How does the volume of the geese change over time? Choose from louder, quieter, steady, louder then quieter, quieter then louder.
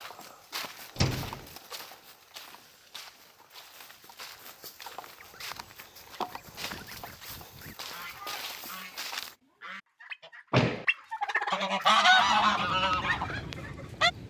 louder.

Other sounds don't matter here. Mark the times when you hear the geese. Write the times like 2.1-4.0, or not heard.
5.2-14.1.